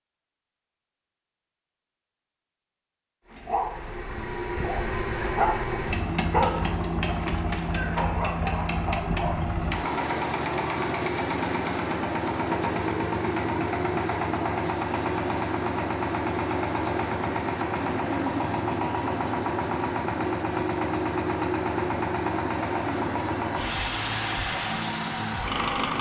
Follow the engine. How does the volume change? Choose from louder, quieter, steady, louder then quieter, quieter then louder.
steady.